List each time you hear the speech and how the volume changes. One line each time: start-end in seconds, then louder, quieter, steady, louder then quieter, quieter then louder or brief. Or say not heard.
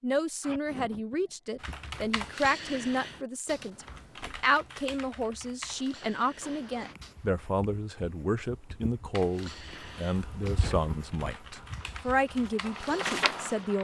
0.0-13.7 steady.